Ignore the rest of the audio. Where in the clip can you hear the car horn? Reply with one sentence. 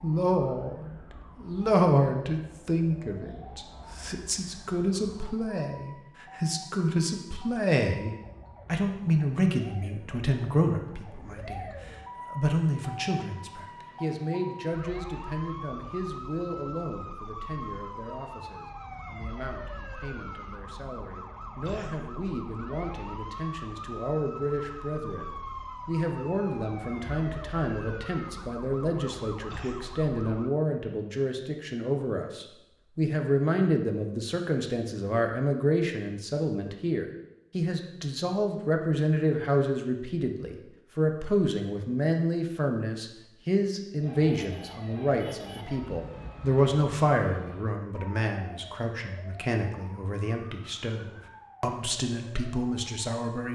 The car horn can't be heard in this clip.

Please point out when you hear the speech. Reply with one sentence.
You can hear the speech from 0.0 to 53.5 s.